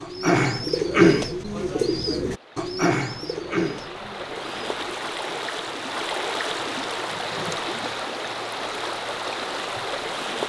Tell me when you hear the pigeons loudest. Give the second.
1 s.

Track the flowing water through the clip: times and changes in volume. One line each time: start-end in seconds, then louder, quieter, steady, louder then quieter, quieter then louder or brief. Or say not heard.
0.0-10.4 louder.